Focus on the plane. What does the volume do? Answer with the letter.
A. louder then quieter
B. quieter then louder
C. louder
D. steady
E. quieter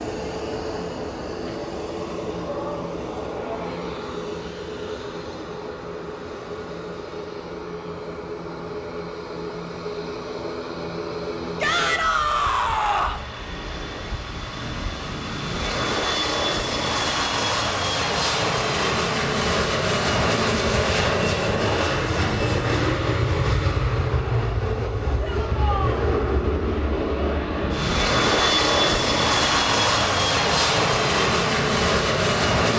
C.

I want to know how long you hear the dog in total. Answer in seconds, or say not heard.
not heard.